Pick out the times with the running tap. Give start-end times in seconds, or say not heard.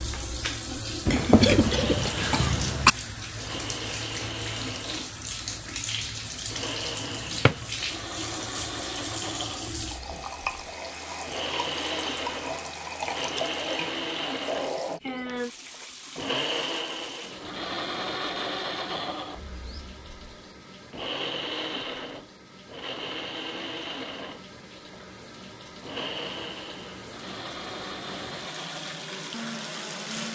0.0-30.3.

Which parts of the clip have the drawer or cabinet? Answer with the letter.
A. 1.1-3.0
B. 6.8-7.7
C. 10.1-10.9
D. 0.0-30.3
B.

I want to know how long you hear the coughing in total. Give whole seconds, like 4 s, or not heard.
2 s.